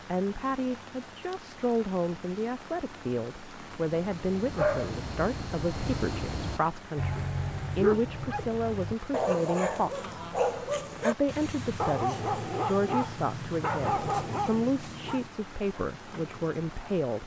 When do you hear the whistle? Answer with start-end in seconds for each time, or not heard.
not heard.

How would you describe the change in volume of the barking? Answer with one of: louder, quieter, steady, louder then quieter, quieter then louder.
steady.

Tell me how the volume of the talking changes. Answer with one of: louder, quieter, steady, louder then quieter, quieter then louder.
steady.